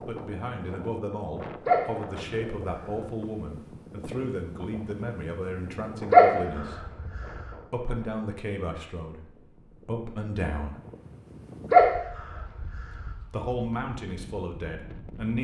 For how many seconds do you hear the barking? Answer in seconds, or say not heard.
4 s.